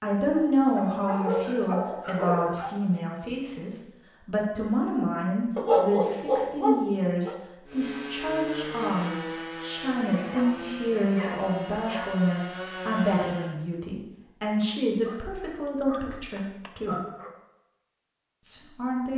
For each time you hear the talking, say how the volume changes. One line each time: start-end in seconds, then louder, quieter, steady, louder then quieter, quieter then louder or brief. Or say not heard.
0.0-17.0 steady
18.4-19.1 brief.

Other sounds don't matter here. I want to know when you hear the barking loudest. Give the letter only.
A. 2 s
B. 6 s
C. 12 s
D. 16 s
B.